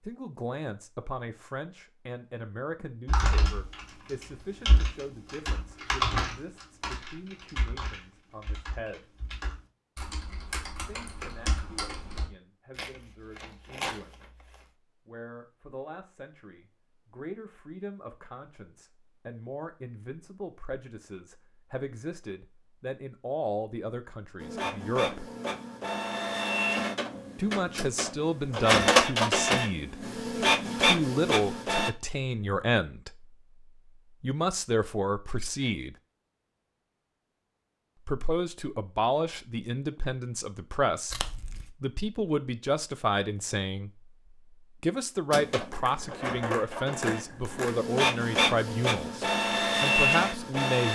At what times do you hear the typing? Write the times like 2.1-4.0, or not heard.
3.0-12.2.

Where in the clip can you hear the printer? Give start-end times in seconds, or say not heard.
24.4-31.9, 45.3-50.8.